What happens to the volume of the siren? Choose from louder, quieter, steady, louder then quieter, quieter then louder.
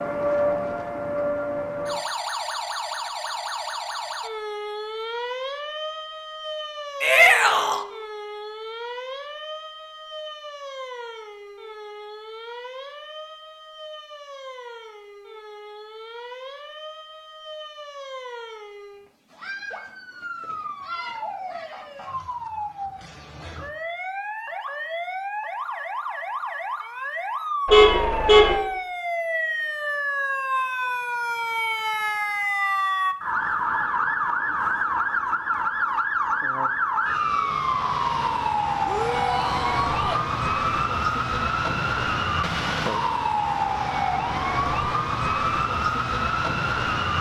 quieter then louder.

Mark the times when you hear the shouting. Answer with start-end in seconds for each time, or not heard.
7.0-7.8, 38.9-40.2.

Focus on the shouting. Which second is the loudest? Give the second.
7 s.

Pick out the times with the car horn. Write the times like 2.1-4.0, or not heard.
27.6-28.6.